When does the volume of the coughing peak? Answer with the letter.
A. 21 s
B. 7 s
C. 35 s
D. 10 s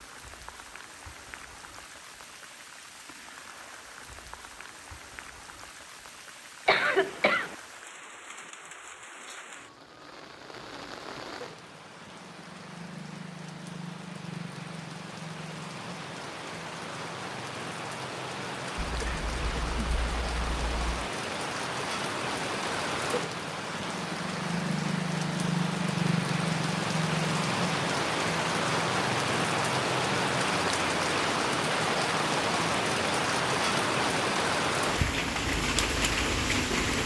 B.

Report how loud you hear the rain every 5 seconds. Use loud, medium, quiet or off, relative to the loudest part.
quiet, quiet, quiet, medium, medium, loud, loud, loud.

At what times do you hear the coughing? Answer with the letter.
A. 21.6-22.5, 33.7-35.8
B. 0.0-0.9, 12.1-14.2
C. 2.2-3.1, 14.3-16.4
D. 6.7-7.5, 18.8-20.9
D.